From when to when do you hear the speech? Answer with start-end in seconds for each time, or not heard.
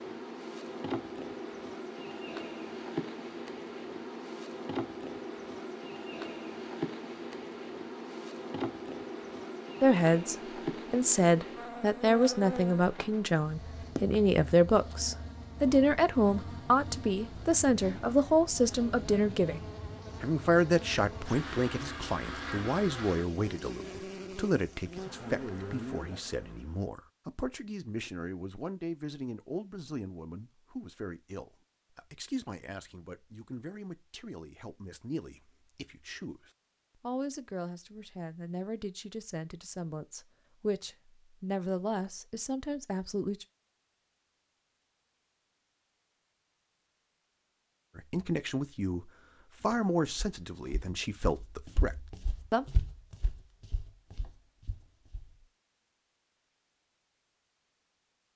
9.8-43.5, 48.0-52.6.